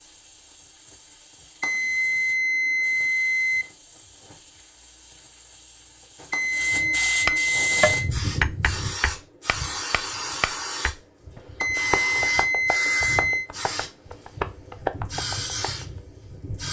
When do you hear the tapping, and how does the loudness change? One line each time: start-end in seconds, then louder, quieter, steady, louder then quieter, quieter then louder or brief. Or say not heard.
7.2-15.8 quieter then louder.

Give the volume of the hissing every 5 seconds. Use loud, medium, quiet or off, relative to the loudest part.
quiet, loud, loud, loud.